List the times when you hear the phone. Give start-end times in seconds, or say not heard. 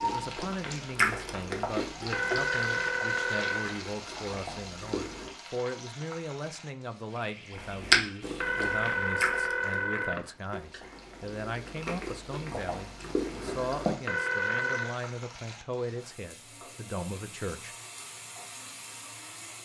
2.1-3.8, 8.4-10.2, 14.1-15.0.